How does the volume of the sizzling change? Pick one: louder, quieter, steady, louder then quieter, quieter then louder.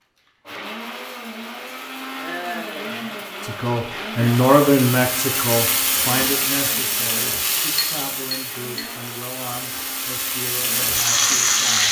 quieter then louder.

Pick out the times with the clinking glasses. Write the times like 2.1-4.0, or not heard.
7.8-8.8.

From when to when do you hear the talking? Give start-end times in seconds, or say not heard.
3.4-11.8.